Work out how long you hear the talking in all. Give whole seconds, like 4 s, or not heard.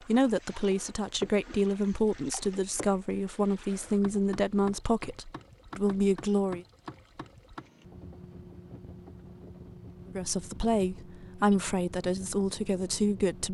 10 s.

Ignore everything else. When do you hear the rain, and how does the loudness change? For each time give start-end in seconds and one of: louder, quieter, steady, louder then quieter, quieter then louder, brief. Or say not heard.
not heard.